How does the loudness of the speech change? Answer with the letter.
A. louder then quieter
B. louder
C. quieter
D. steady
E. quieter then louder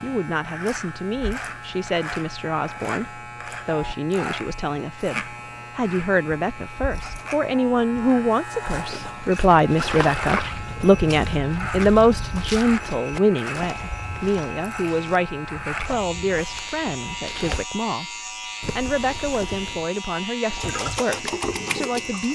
A.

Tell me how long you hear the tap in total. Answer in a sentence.
The tap can be heard for 2 seconds in total.